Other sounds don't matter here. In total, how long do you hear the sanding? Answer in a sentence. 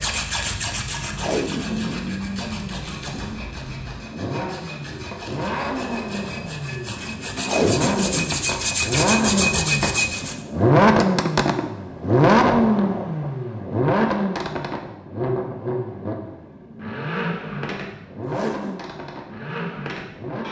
You can hear the sanding for 10 seconds altogether.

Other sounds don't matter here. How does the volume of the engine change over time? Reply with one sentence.
The loudness of the engine goes up, then down.